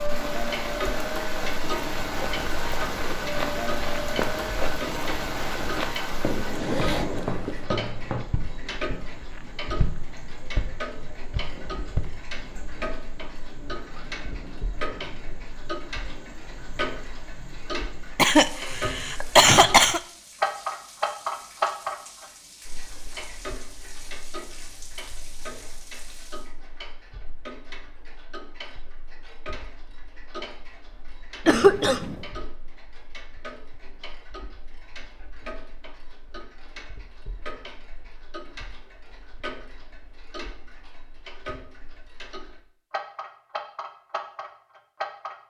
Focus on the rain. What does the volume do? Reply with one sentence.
The volume of the rain goes down.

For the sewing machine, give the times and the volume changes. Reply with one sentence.
The sewing machine can't be heard in this clip.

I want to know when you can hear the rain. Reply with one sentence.
The rain can be heard from 0.0 to 26.5 s.